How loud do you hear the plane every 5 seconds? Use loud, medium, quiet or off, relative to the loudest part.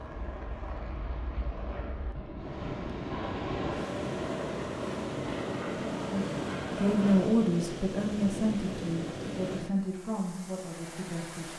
loud, loud, off.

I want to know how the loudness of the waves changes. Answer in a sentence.
The volume of the waves goes down.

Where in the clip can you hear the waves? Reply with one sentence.
The waves can be heard from 2.4 to 11.5 s.